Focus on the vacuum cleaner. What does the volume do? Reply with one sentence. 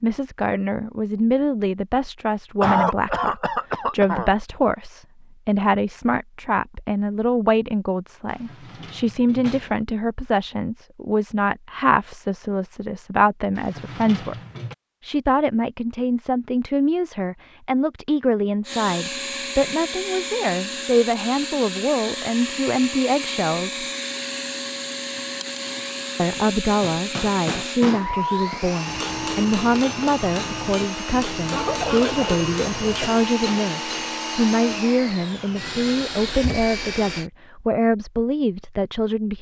The loudness of the vacuum cleaner stays about the same.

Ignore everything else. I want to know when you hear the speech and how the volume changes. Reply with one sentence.
You can hear the speech from 0.0 to 14.3 s, at a steady volume; from 15.0 to 23.9 s, at a steady volume; and from 26.1 to 39.3 s, at a steady volume.